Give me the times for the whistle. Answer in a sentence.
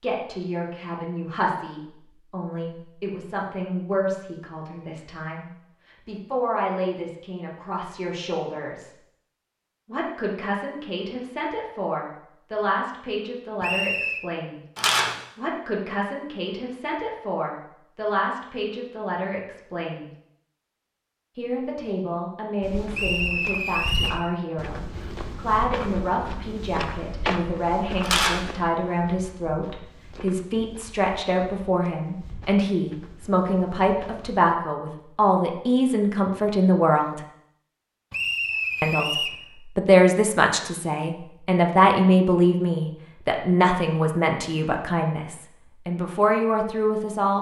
You can hear the whistle from 13.6 to 14.2 s, from 22.9 to 24.2 s and from 38.1 to 39.4 s.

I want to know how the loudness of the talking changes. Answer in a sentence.
The volume of the talking goes up.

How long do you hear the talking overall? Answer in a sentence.
The talking can be heard for 43 seconds in total.